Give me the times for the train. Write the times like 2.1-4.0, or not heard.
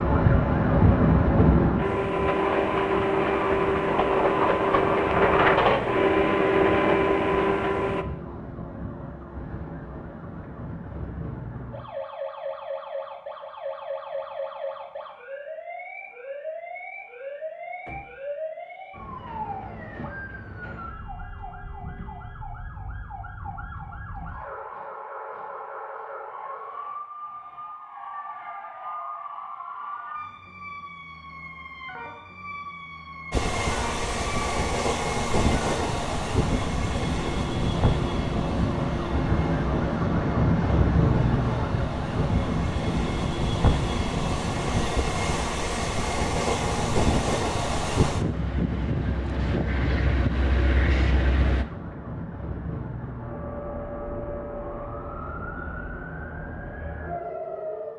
0.0-8.1, 33.3-51.6.